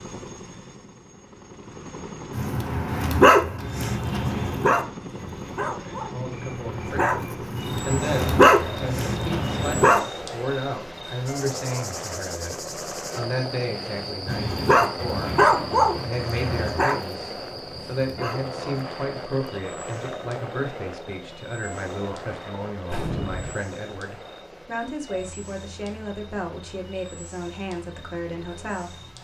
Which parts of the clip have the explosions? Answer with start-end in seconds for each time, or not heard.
22.9-23.6.